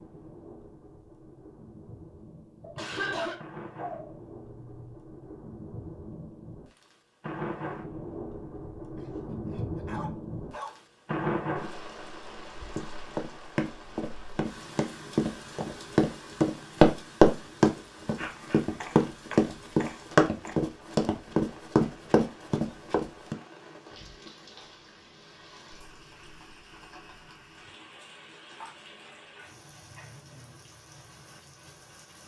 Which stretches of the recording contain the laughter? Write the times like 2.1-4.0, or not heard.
2.8-3.4.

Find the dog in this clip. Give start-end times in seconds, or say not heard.
2.6-5.0, 8.9-10.8, 18.1-20.6, 28.6-30.1.